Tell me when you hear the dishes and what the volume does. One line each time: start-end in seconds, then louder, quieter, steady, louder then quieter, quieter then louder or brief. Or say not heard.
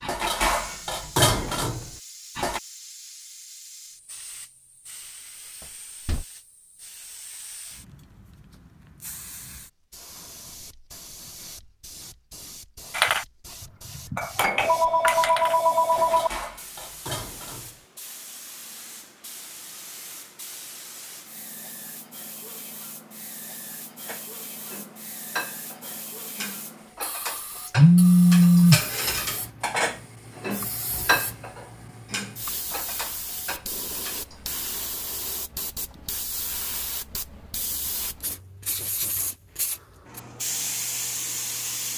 0.0-2.6 brief
12.9-17.9 louder then quieter
24.1-34.5 louder then quieter.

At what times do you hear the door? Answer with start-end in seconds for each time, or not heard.
5.6-6.2.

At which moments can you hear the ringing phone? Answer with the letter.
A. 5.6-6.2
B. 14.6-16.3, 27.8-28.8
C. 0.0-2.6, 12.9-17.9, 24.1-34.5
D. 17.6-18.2
B.